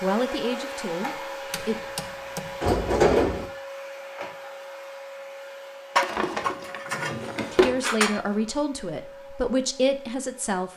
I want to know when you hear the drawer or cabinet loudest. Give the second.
3 s.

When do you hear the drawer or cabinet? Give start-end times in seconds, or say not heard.
2.6-3.5, 6.0-7.8.